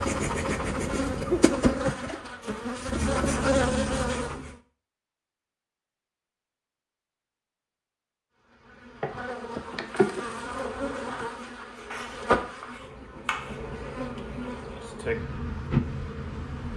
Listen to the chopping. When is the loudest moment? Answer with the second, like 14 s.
13 s.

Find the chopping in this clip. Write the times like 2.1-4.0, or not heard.
11.9-13.6.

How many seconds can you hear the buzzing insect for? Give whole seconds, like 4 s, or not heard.
13 s.